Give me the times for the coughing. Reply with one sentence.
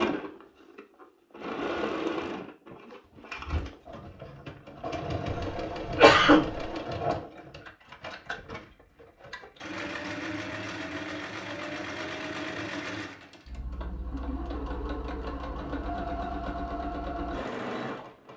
You can hear the coughing from 5.3 to 6.7 s.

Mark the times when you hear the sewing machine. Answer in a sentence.
The sewing machine can be heard from 0.0 to 18.3 s.